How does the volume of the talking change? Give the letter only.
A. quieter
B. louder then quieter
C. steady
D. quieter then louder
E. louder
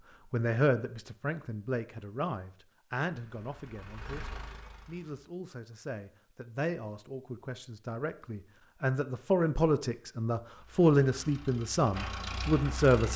D.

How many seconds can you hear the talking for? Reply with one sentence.
The talking can be heard for 13 seconds in total.